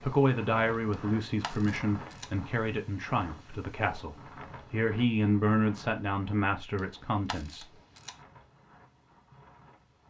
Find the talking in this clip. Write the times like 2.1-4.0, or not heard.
0.0-7.8.